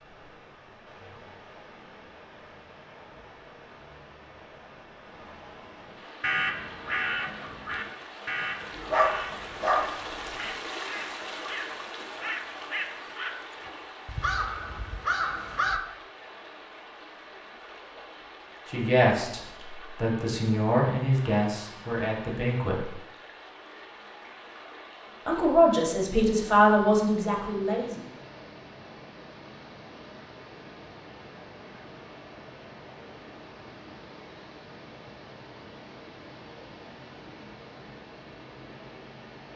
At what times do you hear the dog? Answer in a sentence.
You can hear the dog from 8.8 to 10.3 s.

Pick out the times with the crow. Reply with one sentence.
The crow can be heard from 6.2 to 15.8 s.